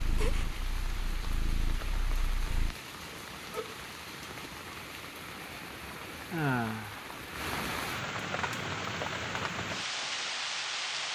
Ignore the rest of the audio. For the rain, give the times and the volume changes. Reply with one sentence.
You can hear the rain from 0.0 to 11.1 s, getting louder.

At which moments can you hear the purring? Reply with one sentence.
The purring can be heard from 0.0 to 2.8 s.